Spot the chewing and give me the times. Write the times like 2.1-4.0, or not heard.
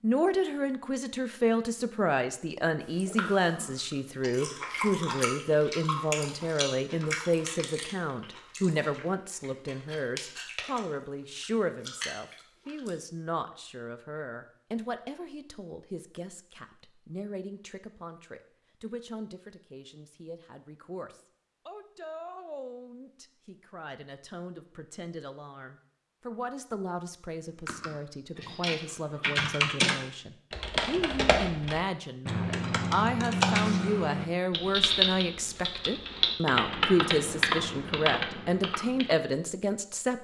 2.8-12.9.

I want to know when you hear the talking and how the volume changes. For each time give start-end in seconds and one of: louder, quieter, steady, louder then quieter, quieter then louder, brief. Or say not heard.
0.0-40.1 quieter then louder.